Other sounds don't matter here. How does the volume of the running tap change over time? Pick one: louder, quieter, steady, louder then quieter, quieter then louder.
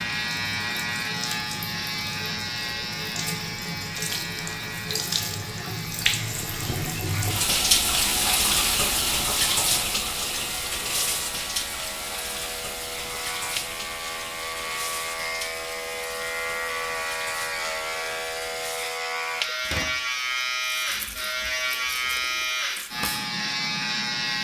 louder then quieter.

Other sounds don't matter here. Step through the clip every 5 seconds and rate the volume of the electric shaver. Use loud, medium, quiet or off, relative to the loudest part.
loud, medium, medium, loud, loud.